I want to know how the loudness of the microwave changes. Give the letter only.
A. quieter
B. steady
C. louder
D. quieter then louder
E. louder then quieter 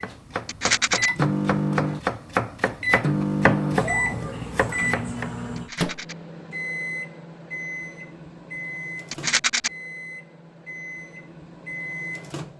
A.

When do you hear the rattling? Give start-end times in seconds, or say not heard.
0.5-1.1, 5.5-6.2, 9.1-9.7.